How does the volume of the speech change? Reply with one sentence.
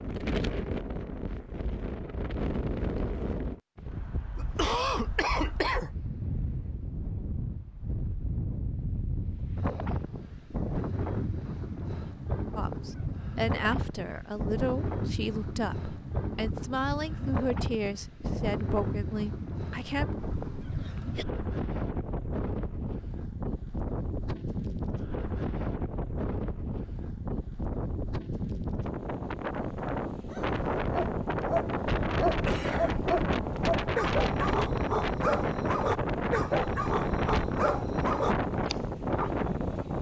The loudness of the speech stays about the same.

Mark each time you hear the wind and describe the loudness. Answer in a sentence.
You can hear the wind from 0.0 to 39.9 s, getting louder.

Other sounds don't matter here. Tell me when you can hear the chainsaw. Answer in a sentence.
The chainsaw can't be heard in this clip.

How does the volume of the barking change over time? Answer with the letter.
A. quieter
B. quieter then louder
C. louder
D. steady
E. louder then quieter
D.